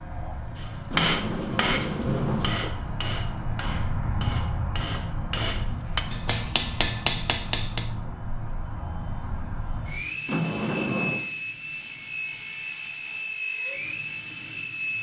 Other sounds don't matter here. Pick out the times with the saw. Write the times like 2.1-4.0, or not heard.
not heard.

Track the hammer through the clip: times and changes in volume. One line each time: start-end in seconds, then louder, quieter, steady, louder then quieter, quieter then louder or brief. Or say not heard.
0.6-7.9 quieter then louder.